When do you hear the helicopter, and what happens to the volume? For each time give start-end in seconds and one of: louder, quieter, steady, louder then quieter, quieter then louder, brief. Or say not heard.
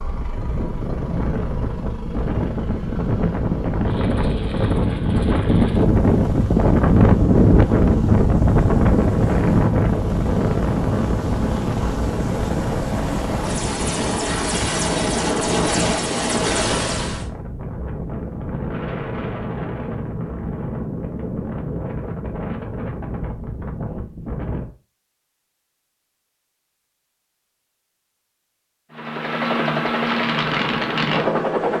0.0-17.2 louder
28.9-31.7 brief.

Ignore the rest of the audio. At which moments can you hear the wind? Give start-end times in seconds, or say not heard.
0.0-24.7.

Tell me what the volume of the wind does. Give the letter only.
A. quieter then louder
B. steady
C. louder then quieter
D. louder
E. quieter
C.